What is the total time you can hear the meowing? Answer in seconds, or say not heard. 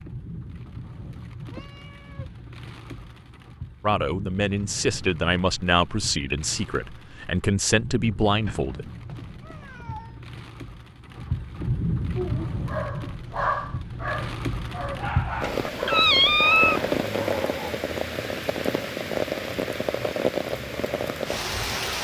4 s.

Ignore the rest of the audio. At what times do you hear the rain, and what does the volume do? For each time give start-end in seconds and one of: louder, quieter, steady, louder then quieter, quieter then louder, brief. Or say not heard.
0.0-21.9 louder.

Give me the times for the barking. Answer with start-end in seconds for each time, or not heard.
12.2-17.8.